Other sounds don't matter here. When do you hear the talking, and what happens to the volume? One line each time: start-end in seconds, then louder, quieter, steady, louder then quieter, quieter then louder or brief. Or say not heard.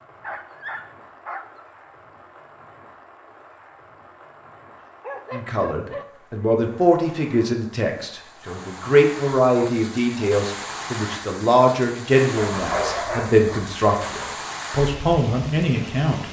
5.3-16.2 steady.